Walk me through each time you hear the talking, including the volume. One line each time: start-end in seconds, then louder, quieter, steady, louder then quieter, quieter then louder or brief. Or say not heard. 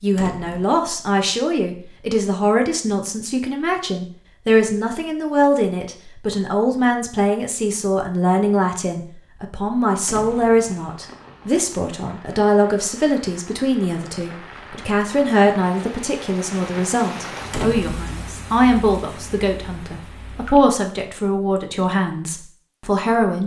0.0-23.4 steady.